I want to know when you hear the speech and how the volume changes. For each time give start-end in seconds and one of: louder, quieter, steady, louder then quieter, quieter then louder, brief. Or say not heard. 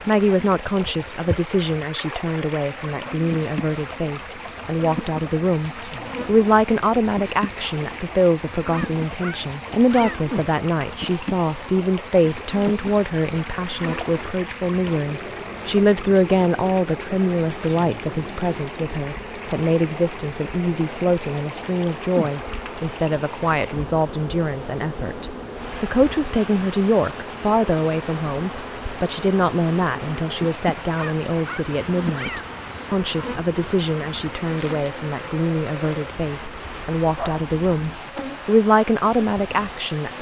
0.1-40.1 steady.